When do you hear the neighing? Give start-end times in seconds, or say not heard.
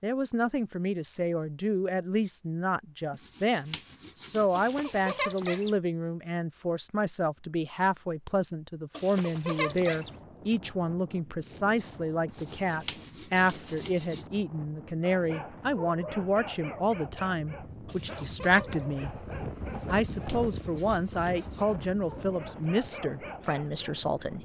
4.5-5.8, 8.9-10.1, 17.9-18.9.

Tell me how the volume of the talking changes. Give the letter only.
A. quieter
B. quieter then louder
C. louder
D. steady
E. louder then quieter
D.